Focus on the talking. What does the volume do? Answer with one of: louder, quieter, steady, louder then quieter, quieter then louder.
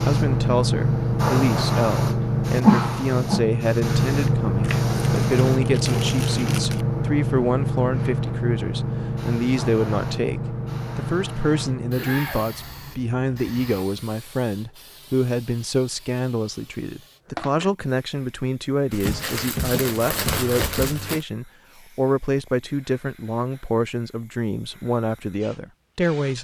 steady.